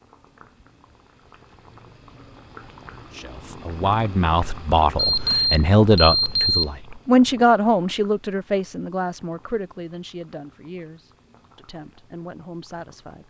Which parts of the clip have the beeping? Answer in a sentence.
The beeping can be heard from 5.0 to 6.7 s.